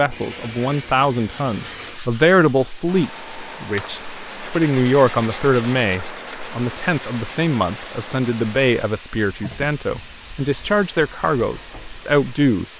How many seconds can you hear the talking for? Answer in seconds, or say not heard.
13 s.